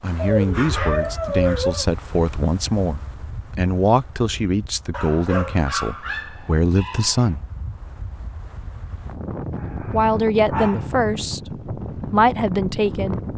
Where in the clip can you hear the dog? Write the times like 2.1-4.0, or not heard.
0.1-1.9, 4.9-7.3, 9.6-11.3.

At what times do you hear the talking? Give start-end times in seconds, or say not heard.
0.0-7.5, 9.8-13.2.